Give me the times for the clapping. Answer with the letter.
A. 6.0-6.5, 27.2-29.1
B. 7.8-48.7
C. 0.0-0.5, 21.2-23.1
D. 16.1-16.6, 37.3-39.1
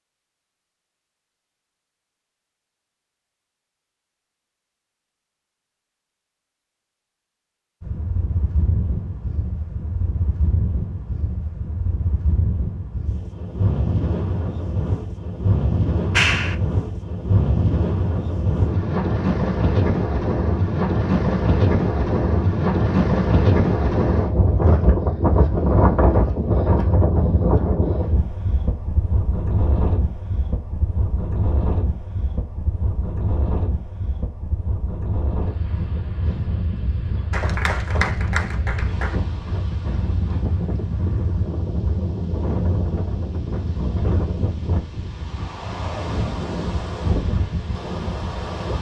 D.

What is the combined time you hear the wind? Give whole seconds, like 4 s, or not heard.
41 s.